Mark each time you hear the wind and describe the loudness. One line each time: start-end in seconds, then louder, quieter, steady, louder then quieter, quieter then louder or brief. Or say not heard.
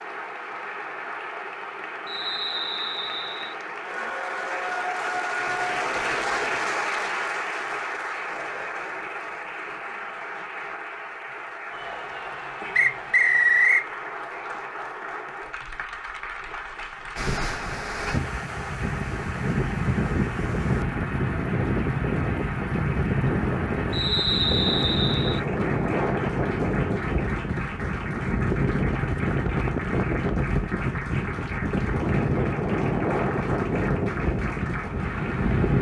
17.1-35.7 steady.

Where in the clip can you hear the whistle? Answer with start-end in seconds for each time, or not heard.
2.0-3.5, 12.8-13.8, 23.9-25.4.